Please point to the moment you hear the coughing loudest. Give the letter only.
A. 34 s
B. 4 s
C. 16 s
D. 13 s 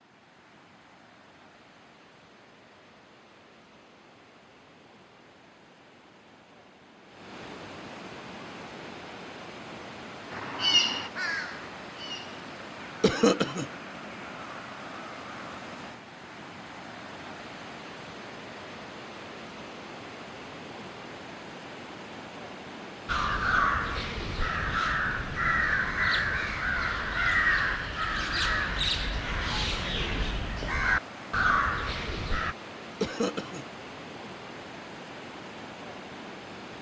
D.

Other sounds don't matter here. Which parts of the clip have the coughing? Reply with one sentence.
The coughing can be heard from 13.0 to 13.7 s and from 33.0 to 33.6 s.